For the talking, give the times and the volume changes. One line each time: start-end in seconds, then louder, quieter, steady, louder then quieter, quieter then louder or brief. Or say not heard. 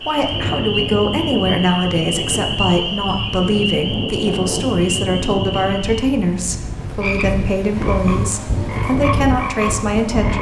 0.0-10.3 steady.